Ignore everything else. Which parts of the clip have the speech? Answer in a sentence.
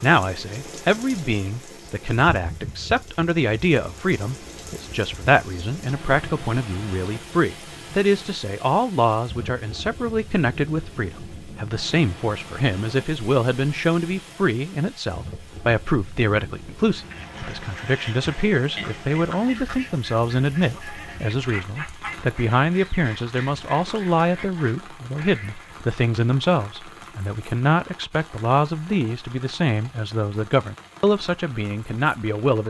The speech can be heard from 0.0 to 32.6 s.